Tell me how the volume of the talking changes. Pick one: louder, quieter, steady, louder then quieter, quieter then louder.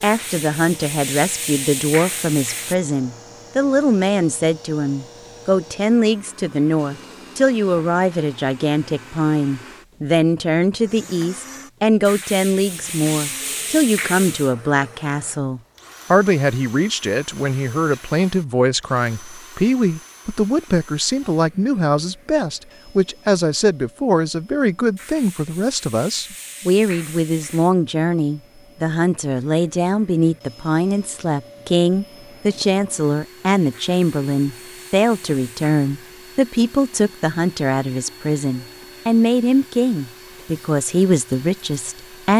steady.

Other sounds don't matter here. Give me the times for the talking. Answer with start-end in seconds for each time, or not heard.
0.0-42.3.